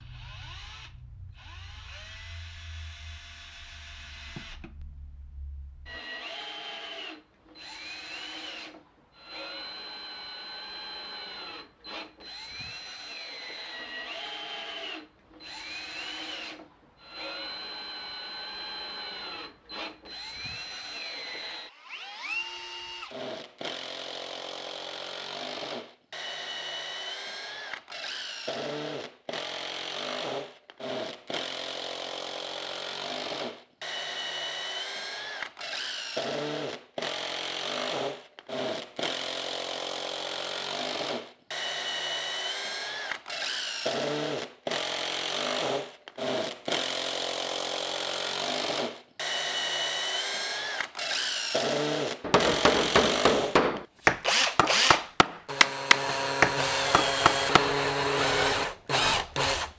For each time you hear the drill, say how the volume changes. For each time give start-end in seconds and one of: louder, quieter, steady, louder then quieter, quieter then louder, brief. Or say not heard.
0.0-59.7 louder.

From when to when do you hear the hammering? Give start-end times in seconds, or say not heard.
52.2-57.8.